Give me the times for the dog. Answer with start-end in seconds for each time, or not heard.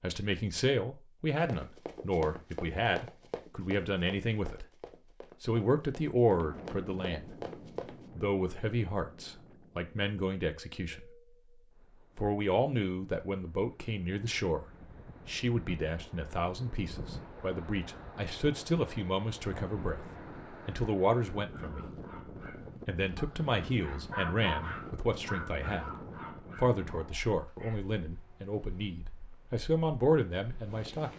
21.4-28.1.